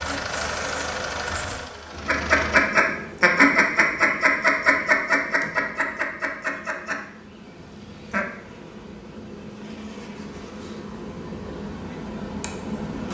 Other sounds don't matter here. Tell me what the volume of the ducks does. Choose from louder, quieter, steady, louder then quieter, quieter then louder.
quieter.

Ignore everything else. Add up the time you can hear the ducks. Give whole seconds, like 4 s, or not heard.
6 s.